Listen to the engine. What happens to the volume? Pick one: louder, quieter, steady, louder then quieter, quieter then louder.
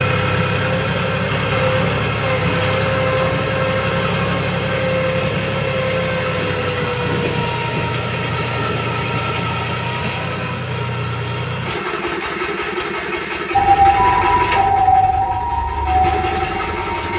quieter.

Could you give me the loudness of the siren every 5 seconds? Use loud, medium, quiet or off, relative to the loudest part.
off, off, loud, medium.